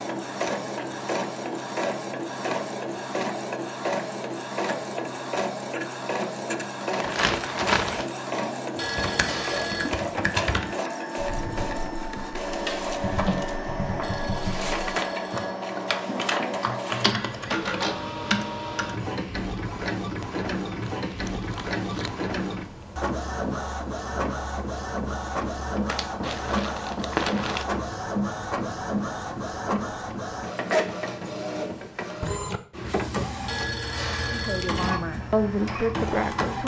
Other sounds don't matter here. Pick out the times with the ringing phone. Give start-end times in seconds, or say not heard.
8.8-9.9, 14.0-15.6, 33.5-35.0.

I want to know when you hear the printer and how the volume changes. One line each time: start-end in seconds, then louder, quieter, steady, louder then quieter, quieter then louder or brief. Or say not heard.
0.0-36.6 steady.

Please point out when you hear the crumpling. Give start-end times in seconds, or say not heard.
6.9-8.2, 20.8-22.1, 25.9-27.6.